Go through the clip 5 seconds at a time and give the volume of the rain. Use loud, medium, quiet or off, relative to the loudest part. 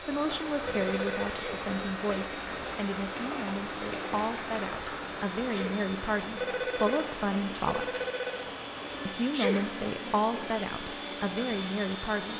loud, loud, medium.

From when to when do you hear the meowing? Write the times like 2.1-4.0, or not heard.
not heard.